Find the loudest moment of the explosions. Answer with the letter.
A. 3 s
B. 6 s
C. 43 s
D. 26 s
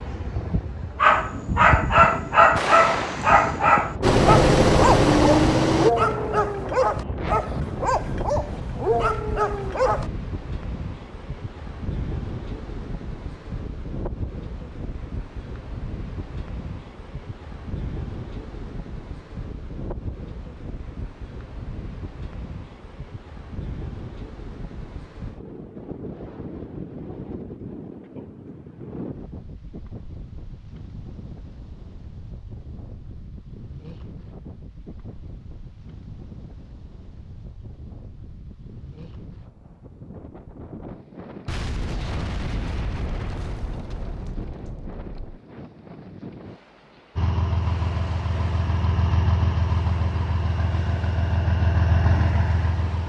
A.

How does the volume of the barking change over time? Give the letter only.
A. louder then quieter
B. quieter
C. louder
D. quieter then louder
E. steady
B.